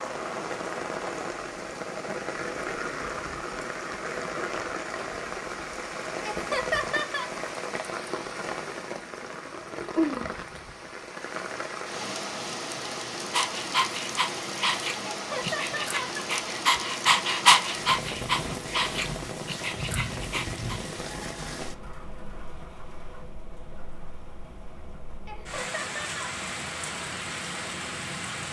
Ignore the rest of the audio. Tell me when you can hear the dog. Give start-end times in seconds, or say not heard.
13.3-20.8.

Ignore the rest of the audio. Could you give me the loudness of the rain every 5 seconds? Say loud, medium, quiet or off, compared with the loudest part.
loud, loud, loud, loud, medium, loud.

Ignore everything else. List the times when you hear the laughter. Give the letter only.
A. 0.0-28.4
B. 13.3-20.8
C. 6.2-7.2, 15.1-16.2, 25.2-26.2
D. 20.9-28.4
C.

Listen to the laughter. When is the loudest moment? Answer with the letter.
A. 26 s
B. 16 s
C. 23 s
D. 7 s
D.